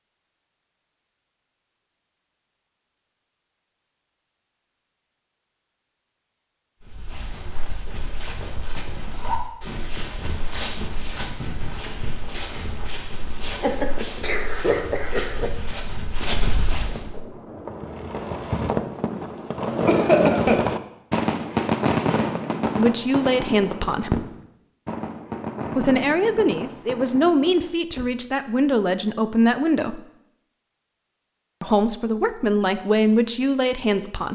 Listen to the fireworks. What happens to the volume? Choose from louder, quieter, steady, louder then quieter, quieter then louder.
louder then quieter.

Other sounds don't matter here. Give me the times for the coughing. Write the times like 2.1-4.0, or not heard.
13.6-15.5, 19.9-20.6.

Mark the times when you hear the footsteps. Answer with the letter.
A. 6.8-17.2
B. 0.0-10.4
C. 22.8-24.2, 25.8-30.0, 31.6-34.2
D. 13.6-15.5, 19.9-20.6
A.